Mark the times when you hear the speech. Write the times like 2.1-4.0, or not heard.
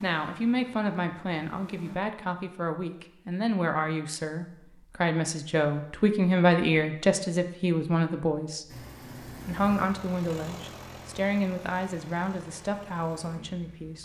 0.0-8.8, 9.4-13.9.